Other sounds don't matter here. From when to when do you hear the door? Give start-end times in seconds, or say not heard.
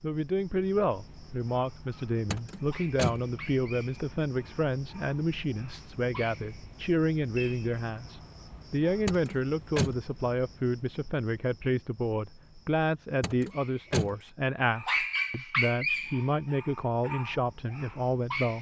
2.3-3.2, 9.1-10.0, 13.2-14.2.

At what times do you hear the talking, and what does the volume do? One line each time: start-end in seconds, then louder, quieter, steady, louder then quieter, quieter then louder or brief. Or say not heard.
0.0-18.5 steady.